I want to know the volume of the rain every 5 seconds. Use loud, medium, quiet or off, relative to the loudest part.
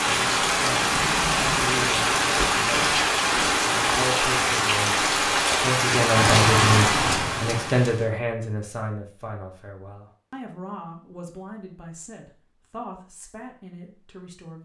loud, loud, off.